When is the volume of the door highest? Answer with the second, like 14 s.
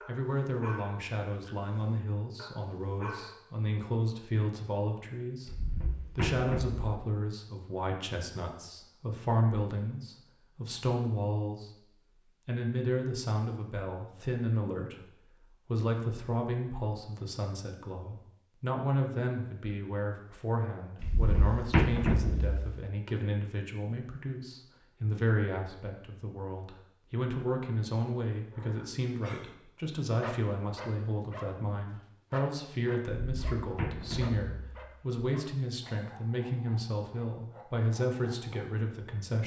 22 s.